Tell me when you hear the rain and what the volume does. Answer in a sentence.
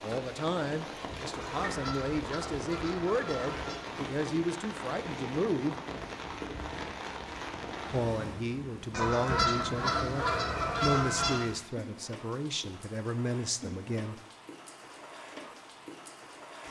The rain can be heard from 0.0 to 16.6 s, getting quieter.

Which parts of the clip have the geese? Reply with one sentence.
You can hear the geese from 1.4 to 3.9 s and from 8.9 to 11.4 s.